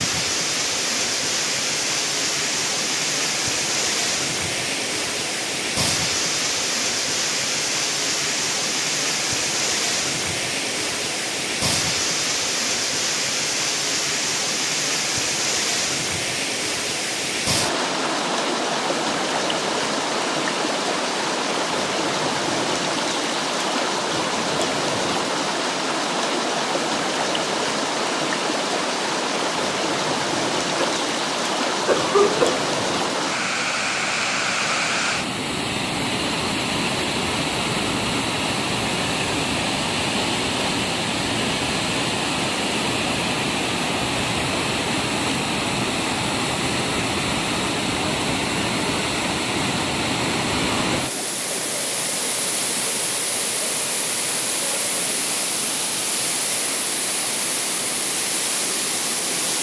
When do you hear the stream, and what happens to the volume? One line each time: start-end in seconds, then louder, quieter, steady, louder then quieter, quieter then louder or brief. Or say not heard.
0.0-59.5 steady.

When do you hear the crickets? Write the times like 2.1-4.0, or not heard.
not heard.